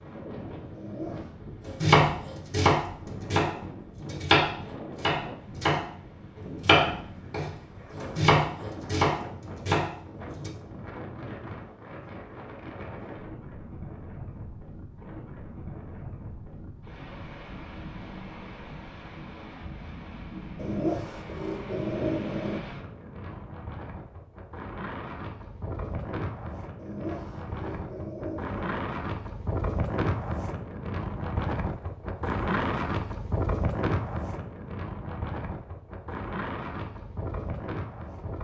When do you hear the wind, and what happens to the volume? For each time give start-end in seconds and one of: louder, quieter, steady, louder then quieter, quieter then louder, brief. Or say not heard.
0.0-38.3 louder.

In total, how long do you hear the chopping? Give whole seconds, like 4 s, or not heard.
8 s.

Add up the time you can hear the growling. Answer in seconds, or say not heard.
5 s.